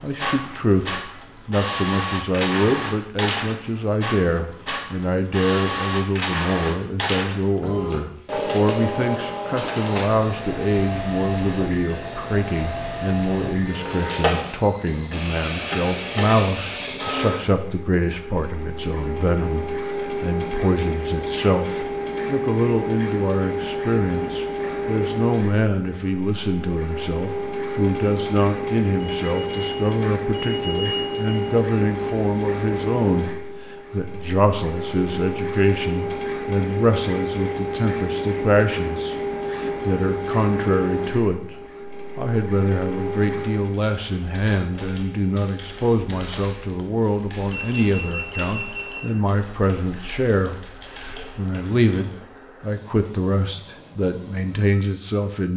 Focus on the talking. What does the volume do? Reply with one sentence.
The loudness of the talking stays about the same.